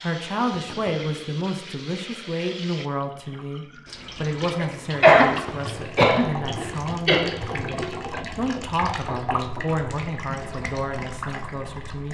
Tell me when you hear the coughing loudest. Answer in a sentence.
The loudest moment of the coughing is at 5 seconds.